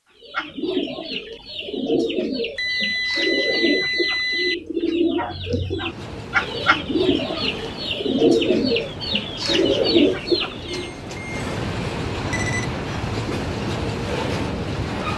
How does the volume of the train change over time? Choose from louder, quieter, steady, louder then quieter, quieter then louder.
louder.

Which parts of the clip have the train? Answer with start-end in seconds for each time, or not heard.
5.8-15.1.